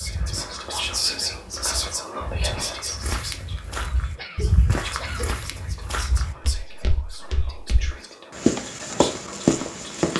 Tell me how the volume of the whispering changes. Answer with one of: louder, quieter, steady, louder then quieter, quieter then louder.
quieter.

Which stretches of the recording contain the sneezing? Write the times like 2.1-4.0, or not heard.
4.2-5.4.